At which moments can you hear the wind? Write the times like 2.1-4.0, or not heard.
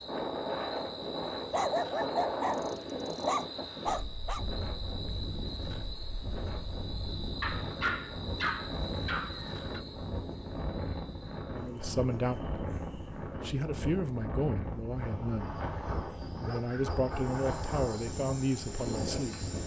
0.0-19.6.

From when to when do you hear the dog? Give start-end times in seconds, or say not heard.
1.5-4.5, 7.4-9.8, 16.4-17.4.